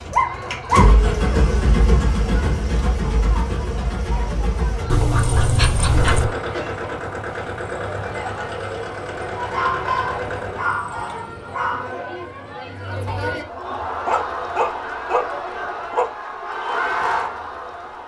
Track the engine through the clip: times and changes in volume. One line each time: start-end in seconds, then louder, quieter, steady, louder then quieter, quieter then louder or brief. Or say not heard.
0.0-10.8 quieter.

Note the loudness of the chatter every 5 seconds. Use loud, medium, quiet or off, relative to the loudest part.
medium, medium, loud, loud.